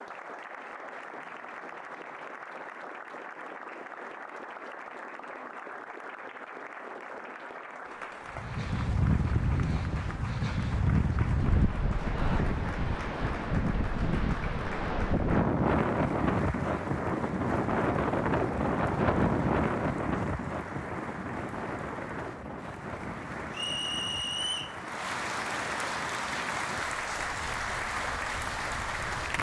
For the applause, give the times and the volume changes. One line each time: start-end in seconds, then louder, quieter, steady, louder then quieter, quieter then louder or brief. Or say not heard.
0.0-29.3 louder.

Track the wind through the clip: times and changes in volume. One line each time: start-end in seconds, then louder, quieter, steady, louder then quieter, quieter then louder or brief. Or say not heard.
8.3-29.3 quieter.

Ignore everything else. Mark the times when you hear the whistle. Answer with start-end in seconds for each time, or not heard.
23.5-24.8.